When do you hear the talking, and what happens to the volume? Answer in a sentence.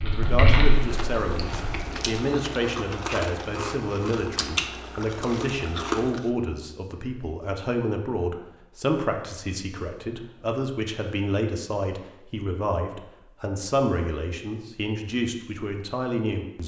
The talking can be heard from 0.0 to 16.6 s, at a steady volume.